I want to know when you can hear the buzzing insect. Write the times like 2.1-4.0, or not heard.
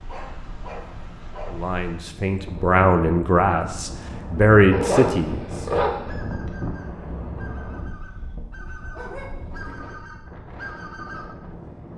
not heard.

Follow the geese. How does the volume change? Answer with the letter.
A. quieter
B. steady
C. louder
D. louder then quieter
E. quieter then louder
C.